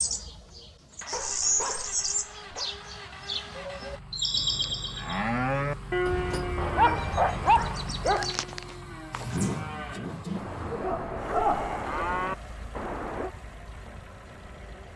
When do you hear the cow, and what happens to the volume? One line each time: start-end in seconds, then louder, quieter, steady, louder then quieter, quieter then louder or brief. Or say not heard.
4.3-13.3 quieter then louder.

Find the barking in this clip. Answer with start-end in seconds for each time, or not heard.
1.1-2.7, 6.5-8.3, 10.2-12.1.